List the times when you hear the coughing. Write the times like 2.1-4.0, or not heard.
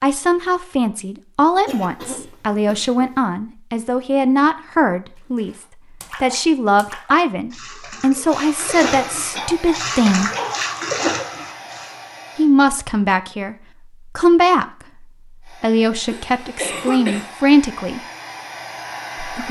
1.6-3.1, 8.8-10.6, 16.1-17.3.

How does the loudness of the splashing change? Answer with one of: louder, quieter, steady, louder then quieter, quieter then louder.
louder.